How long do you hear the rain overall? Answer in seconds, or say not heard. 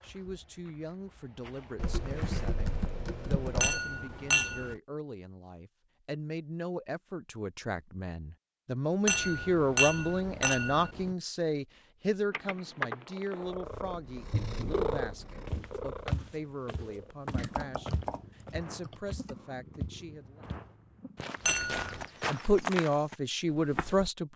not heard.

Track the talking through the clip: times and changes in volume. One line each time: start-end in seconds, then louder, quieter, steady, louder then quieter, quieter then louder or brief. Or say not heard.
0.0-20.4 louder then quieter
22.2-24.3 brief.